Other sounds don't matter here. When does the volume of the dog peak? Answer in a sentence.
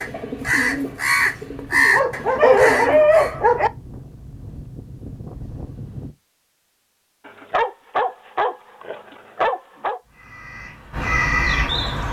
The loudest moment of the dog is at 3 seconds.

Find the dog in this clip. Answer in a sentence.
You can hear the dog from 1.9 to 3.7 s and from 7.2 to 10.0 s.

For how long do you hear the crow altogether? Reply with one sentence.
The crow can be heard for 5 seconds in total.